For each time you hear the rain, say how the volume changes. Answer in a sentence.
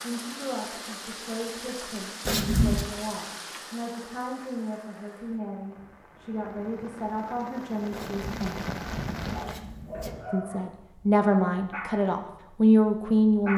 The rain can be heard from 0.0 to 9.6 s, getting quieter then louder.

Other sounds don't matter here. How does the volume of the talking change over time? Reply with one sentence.
The loudness of the talking goes up.